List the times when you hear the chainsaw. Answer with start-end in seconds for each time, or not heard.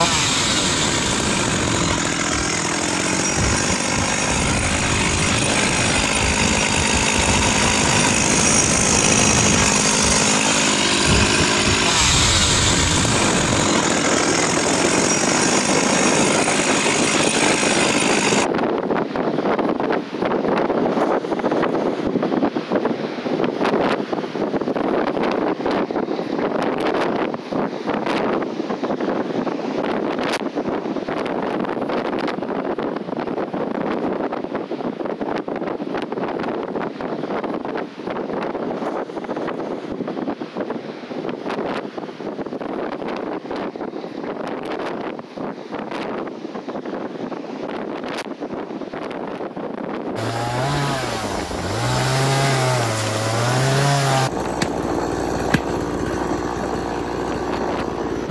0.0-18.4, 50.1-58.2.